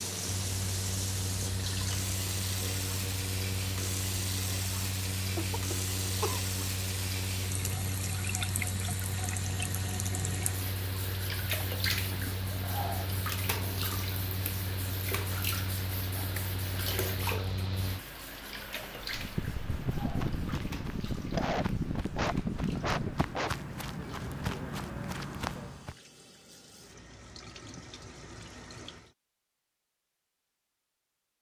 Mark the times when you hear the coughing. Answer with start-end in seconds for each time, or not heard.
5.3-6.5, 21.1-23.6.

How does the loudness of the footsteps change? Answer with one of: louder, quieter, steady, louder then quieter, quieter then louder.
louder.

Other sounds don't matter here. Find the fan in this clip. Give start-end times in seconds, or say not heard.
0.0-23.4.